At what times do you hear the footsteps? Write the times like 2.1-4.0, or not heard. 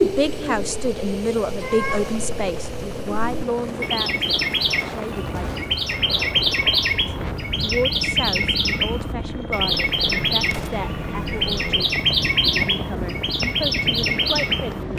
not heard.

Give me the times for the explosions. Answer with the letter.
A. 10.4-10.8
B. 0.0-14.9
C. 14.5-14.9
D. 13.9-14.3
A.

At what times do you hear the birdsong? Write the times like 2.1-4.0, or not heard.
0.0-14.9.